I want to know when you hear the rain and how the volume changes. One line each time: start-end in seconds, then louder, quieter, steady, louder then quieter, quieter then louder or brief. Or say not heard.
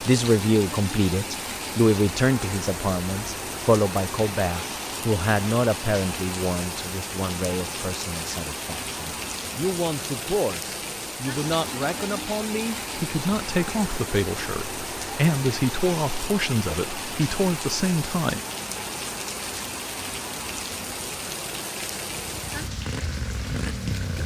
0.0-24.2 steady.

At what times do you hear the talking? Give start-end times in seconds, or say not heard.
0.0-18.4.